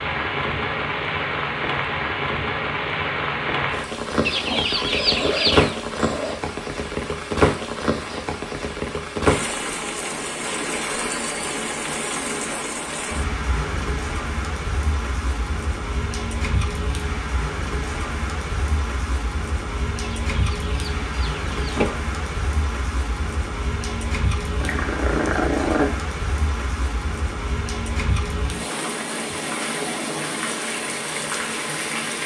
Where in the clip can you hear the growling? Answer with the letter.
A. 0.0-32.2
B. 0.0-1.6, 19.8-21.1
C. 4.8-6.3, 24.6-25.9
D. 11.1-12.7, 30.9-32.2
C.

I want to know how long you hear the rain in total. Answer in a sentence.
The rain can be heard for 32 seconds in total.